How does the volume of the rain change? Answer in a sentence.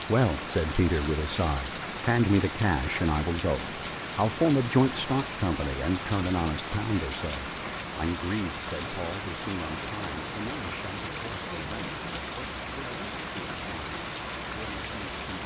The volume of the rain stays about the same.